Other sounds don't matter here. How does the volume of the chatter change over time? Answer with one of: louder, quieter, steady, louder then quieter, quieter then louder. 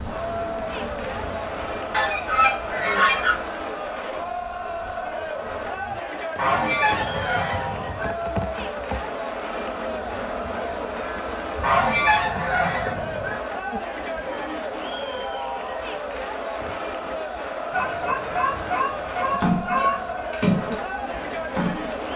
steady.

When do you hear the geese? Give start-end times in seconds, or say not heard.
1.9-3.4, 6.3-8.1, 11.6-13.3, 17.7-20.1.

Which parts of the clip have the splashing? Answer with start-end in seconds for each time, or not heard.
19.3-22.1.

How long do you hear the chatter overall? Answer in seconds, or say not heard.
22 s.